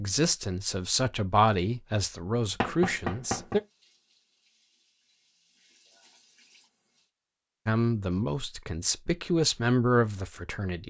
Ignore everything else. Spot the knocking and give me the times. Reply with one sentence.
You can hear the knocking from 2.6 to 3.6 s.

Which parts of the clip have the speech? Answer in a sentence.
You can hear the speech from 0.0 to 3.6 s and from 7.7 to 10.8 s.